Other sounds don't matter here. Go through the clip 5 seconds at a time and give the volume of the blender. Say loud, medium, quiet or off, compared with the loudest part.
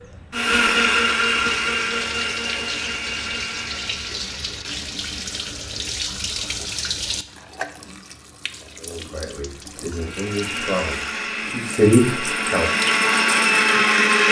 loud, off, loud.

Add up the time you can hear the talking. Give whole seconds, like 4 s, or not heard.
4 s.